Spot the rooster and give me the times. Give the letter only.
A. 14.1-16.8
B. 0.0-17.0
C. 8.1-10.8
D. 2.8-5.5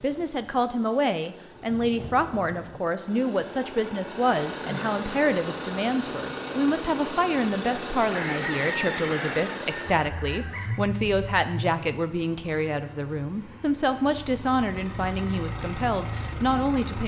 C.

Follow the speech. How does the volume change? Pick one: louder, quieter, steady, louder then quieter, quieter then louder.
steady.